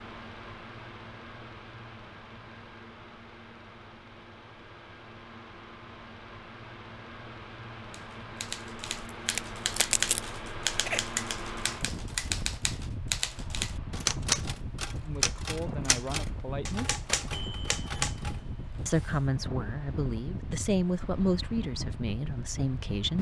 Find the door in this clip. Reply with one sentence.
The door can't be heard in this clip.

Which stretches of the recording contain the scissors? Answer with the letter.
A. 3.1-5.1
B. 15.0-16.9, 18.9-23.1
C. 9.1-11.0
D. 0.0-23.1
C.